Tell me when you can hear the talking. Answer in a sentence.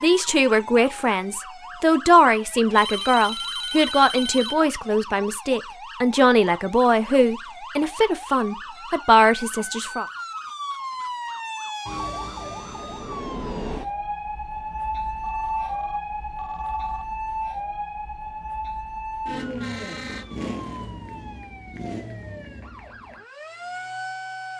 The talking can be heard from 0.0 to 10.1 s.